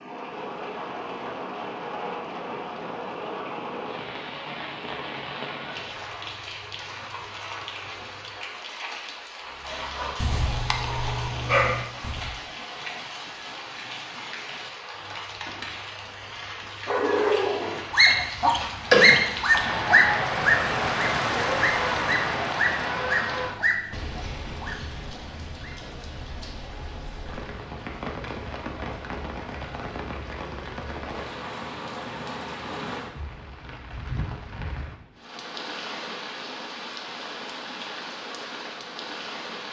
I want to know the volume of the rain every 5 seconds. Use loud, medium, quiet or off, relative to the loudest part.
medium, medium, medium, medium, loud, medium, medium, medium.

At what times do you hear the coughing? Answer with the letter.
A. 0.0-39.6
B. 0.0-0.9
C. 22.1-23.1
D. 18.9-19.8
D.